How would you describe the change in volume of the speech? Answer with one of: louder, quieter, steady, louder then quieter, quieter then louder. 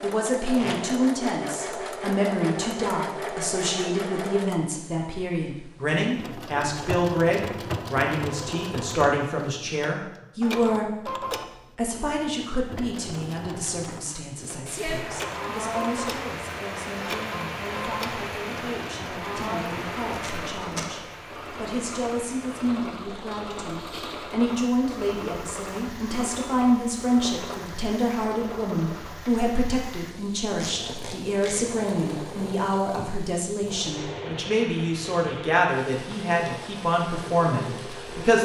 quieter then louder.